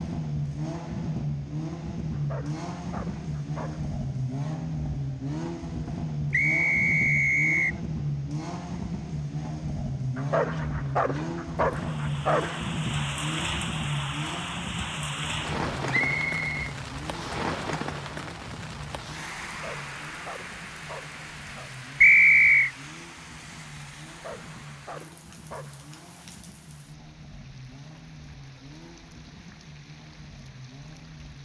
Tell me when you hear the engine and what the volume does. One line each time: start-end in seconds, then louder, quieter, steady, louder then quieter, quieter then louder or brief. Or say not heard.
0.0-31.3 quieter.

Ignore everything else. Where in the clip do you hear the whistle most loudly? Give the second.
22 s.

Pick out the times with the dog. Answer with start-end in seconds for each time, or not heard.
2.1-3.9, 10.2-12.7, 19.5-21.7, 24.1-26.1.